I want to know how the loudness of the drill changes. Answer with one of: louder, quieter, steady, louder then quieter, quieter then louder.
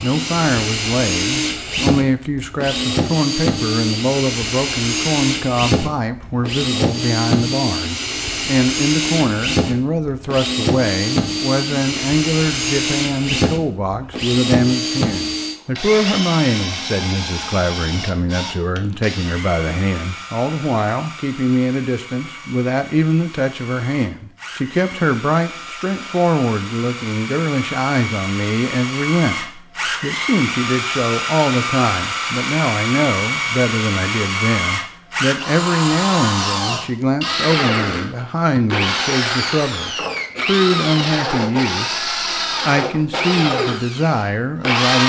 quieter then louder.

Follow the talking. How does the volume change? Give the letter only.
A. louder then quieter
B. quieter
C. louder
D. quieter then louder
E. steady
E.